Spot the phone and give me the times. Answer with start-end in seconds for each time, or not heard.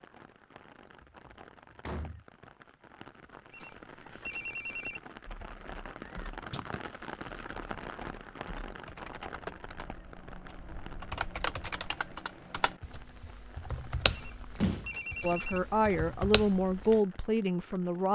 3.5-5.0, 14.1-15.6.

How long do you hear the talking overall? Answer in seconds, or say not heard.
3 s.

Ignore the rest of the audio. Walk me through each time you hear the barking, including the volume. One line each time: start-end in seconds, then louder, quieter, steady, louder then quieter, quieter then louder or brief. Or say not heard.
not heard.